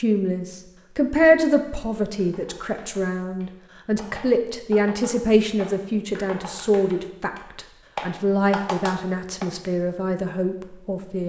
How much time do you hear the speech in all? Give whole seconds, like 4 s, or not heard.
11 s.